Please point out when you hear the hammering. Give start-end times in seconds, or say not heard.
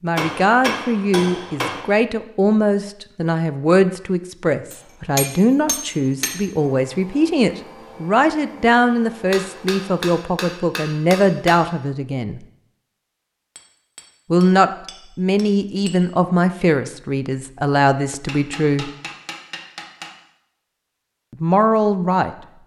0.1-1.9, 4.7-6.4, 9.3-11.7, 13.6-16.0, 18.2-20.1.